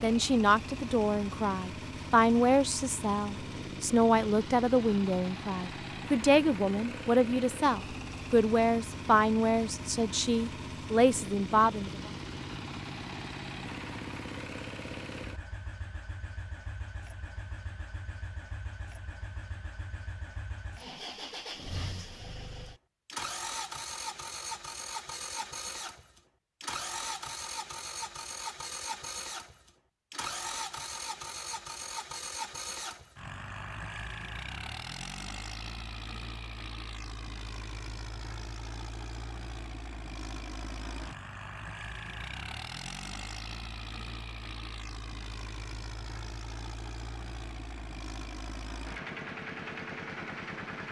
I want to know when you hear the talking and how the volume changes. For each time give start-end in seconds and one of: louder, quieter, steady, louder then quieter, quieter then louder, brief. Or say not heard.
0.0-12.1 steady.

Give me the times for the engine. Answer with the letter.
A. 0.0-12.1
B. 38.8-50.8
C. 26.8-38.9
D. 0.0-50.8
D.